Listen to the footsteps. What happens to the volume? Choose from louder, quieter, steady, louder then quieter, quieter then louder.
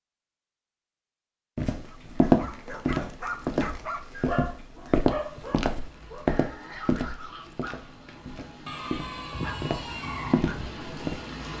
quieter then louder.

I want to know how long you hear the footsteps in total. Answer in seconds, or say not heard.
10 s.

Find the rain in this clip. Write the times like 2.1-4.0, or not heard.
5.1-11.5.